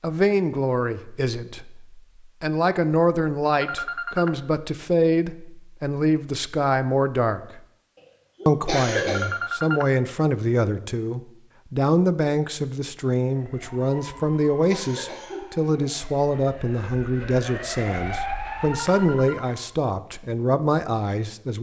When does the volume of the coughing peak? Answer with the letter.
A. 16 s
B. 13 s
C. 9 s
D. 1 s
C.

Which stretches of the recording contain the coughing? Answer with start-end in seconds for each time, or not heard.
8.4-9.2, 14.7-15.4.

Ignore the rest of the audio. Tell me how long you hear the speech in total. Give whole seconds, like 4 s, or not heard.
21 s.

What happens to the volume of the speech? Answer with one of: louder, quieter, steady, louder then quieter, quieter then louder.
steady.